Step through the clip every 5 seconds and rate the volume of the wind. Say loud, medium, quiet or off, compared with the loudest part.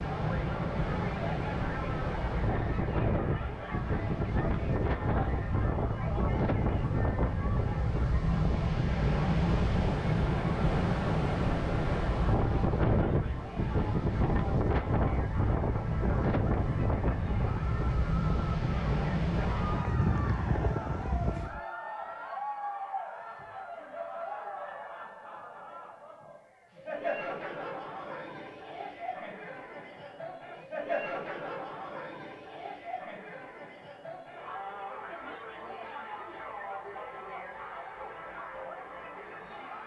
loud, loud, loud, loud, loud, off, off, off.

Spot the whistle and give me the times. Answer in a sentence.
The whistle can't be heard in this clip.